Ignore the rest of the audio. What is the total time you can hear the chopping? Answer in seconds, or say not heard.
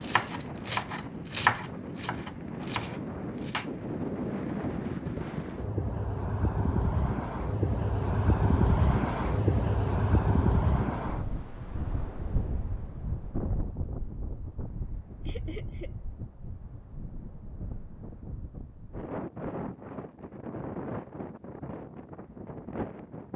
4 s.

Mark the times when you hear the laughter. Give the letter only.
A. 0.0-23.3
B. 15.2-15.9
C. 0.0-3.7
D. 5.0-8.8
B.